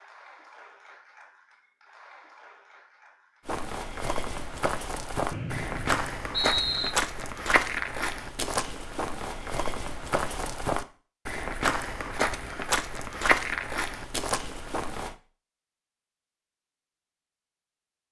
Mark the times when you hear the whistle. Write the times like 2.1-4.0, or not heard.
5.3-6.9.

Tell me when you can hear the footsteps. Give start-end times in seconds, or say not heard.
3.5-15.2.